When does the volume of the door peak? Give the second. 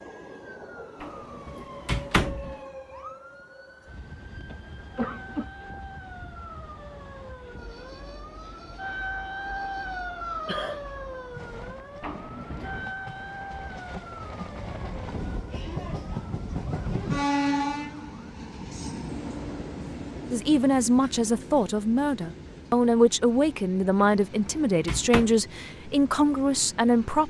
2 s.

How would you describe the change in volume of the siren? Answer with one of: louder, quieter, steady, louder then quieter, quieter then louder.
louder then quieter.